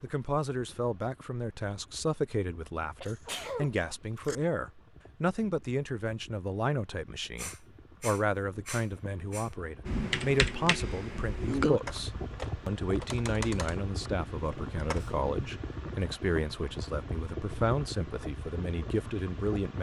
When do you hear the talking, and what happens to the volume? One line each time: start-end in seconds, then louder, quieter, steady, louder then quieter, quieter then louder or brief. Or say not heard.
0.0-19.7 steady.